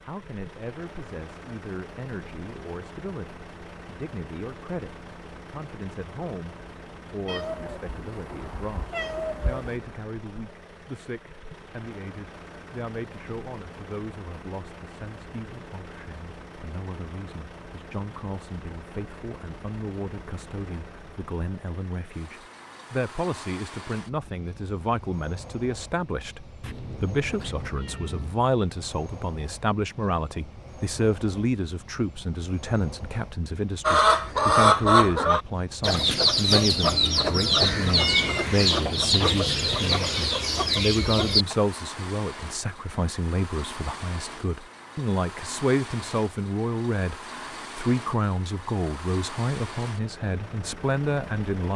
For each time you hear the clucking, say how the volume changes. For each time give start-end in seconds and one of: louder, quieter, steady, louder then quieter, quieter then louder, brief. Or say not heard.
33.8-41.5 quieter.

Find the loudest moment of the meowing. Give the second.
38 s.